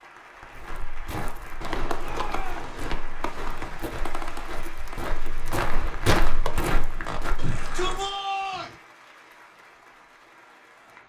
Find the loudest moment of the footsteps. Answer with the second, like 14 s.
6 s.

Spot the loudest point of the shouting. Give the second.
8 s.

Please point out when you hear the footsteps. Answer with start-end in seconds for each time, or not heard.
0.5-8.2.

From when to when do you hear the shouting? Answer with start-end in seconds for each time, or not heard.
1.9-2.7, 7.3-8.8.